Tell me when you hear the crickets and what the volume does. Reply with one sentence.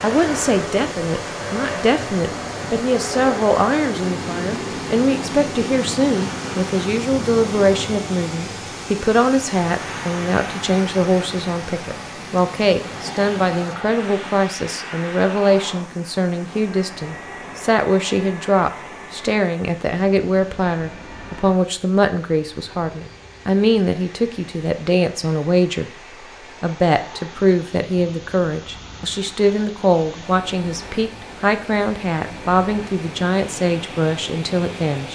The crickets can't be heard in this clip.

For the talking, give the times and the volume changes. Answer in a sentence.
You can hear the talking from 0.0 to 25.9 s, at a steady volume; and from 26.6 to 35.1 s, at a steady volume.